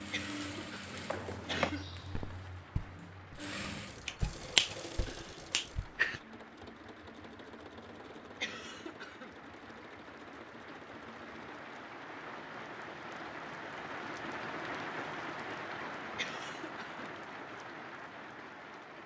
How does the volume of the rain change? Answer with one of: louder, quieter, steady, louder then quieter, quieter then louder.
louder.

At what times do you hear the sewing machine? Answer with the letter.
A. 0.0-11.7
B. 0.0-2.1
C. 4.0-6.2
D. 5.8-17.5
A.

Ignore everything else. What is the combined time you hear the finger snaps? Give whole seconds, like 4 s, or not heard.
2 s.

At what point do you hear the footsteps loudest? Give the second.
2 s.